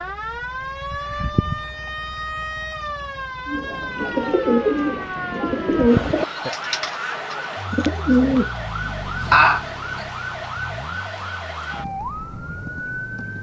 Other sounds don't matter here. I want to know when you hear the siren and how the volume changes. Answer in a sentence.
You can hear the siren from 0.0 to 13.3 s, at a steady volume.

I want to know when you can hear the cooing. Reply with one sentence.
The cooing can be heard from 3.5 to 8.9 s.